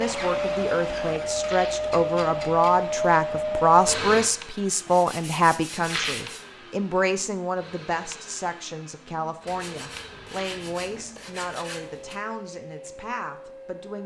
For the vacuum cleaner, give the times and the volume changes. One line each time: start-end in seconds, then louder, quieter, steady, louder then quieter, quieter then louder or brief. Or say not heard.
0.0-14.0 quieter.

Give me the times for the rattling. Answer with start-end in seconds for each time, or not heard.
1.4-1.9, 5.8-6.3, 10.2-10.8.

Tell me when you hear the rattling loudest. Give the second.
6 s.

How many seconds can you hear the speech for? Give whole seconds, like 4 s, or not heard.
14 s.